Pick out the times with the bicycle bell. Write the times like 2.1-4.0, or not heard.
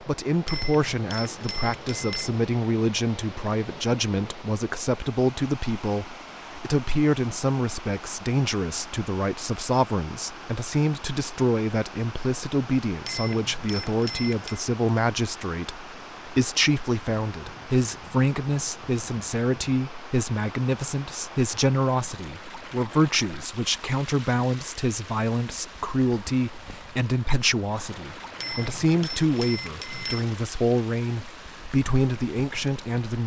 0.5-2.4, 13.1-14.6, 28.4-30.3.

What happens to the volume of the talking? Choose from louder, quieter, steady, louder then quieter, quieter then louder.
steady.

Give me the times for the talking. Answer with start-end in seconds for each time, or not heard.
0.1-33.2.